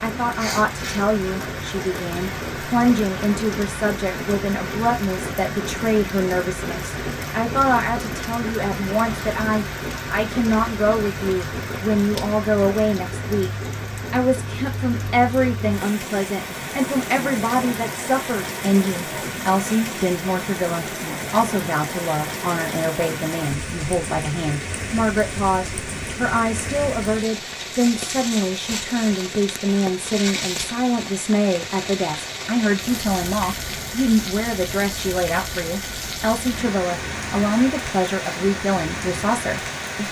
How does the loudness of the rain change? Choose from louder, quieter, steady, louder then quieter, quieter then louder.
steady.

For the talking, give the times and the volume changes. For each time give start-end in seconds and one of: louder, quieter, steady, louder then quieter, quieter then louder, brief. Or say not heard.
0.0-13.5 steady
14.1-40.0 steady.